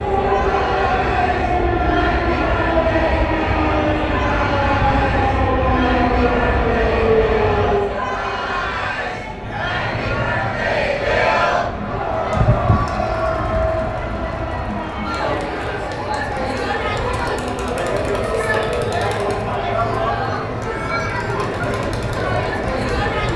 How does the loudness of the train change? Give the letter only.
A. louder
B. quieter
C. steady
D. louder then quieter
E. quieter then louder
B.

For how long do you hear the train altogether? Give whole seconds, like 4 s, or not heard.
23 s.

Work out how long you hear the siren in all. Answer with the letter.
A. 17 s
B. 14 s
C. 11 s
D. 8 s
C.